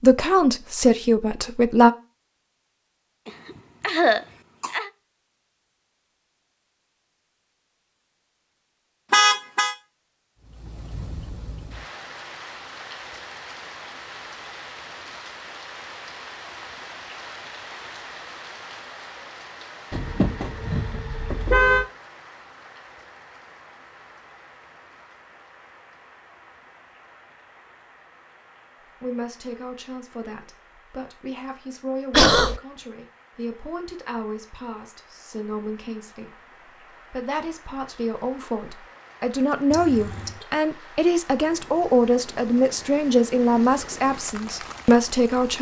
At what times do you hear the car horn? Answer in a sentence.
You can hear the car horn from 9.1 to 9.8 s, from 19.9 to 21.9 s and from 39.7 to 40.5 s.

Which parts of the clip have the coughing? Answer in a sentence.
The coughing can be heard from 3.2 to 4.9 s and from 32.1 to 32.6 s.